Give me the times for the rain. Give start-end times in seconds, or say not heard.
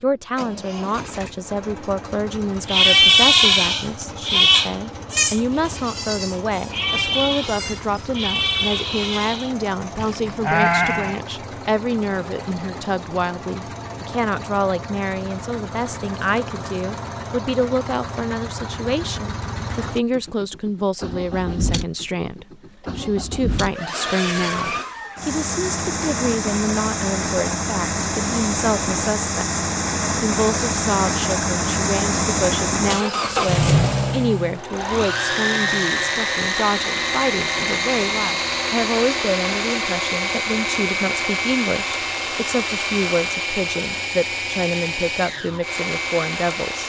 not heard.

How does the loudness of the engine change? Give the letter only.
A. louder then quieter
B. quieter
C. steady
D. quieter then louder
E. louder
E.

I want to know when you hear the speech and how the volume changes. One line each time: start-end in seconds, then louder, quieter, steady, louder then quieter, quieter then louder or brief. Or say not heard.
0.0-46.8 steady.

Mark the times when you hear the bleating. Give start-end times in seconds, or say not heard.
2.6-11.2.